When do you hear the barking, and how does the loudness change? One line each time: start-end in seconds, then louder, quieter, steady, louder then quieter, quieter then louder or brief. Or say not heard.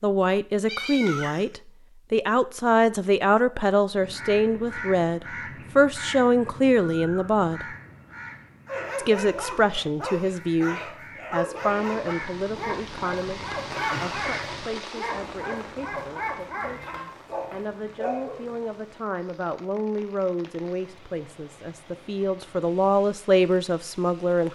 8.7-18.6 steady.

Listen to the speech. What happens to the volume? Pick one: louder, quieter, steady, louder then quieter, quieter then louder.
quieter then louder.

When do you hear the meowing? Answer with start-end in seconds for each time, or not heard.
0.7-1.4, 13.7-14.2, 16.6-17.6.